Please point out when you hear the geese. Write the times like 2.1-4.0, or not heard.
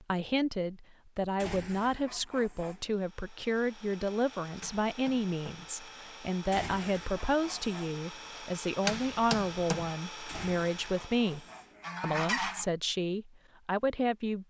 1.4-2.9, 6.5-8.1, 10.2-12.7.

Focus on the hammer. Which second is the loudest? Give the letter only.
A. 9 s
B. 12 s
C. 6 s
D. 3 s
A.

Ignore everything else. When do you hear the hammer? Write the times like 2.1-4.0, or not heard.
4.5-5.7, 8.8-9.9.